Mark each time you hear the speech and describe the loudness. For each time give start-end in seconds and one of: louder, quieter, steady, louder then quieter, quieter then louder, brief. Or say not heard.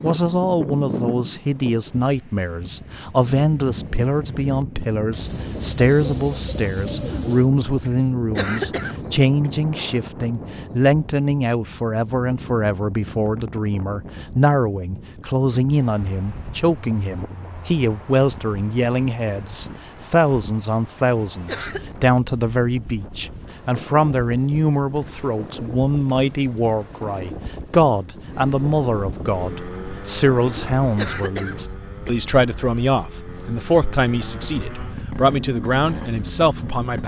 0.0-37.0 steady.